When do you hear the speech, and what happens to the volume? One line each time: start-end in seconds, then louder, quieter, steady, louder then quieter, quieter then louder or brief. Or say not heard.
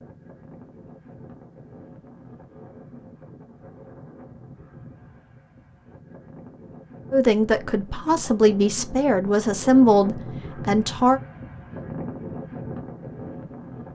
7.1-11.2 louder then quieter.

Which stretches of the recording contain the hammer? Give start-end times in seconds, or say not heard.
not heard.